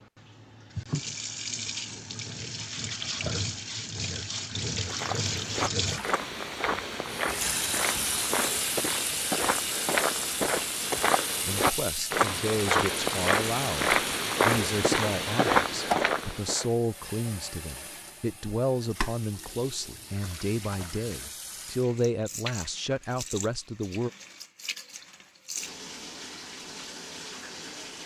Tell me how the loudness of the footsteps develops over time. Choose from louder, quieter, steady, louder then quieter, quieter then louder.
louder.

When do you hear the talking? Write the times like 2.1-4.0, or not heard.
11.4-24.1.